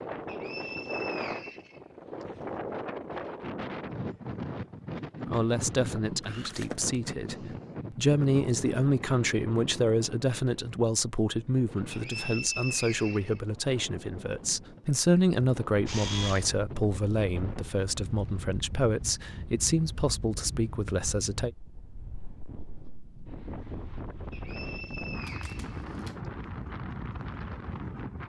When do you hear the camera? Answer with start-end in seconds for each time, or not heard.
6.2-7.0, 15.8-16.4, 25.2-26.1.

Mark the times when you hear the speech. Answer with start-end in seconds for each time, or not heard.
5.2-21.5.